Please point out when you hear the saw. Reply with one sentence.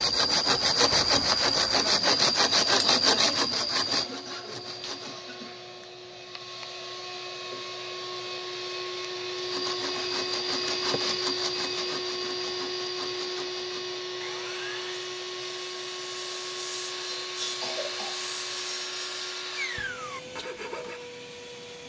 The saw can be heard from 0.0 to 5.2 s and from 9.3 to 21.1 s.